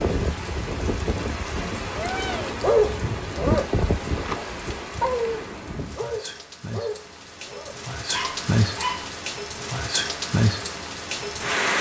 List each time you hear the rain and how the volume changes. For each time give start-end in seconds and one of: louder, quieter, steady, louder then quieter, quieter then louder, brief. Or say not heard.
0.0-11.7 quieter then louder.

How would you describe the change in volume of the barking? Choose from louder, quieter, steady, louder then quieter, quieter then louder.
quieter.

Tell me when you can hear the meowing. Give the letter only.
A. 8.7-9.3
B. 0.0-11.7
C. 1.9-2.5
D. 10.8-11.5
C.